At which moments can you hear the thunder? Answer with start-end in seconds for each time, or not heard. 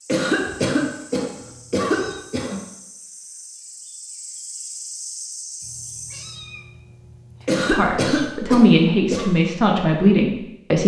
not heard.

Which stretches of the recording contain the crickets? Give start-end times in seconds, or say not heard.
0.0-6.4.